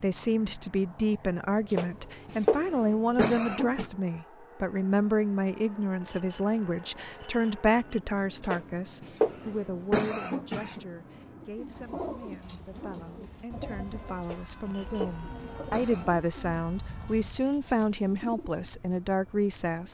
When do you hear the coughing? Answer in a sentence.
You can hear the coughing from 1.7 to 3.9 s, from 8.4 to 10.8 s and from 14.2 to 16.1 s.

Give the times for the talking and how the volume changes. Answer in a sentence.
You can hear the talking from 0.0 to 19.8 s, getting quieter then louder.